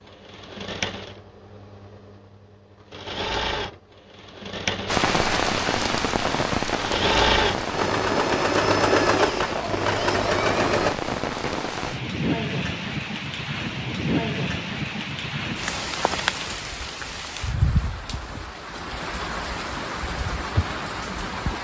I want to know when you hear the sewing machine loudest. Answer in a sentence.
The volume of the sewing machine peaks at 9 seconds.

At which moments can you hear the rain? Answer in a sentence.
The rain can be heard from 4.8 to 21.5 s.